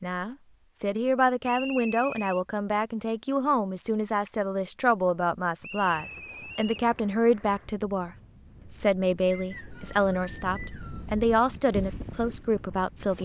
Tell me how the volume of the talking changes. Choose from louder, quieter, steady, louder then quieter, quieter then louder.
steady.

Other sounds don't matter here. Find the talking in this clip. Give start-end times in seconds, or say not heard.
0.0-8.1, 8.7-13.2.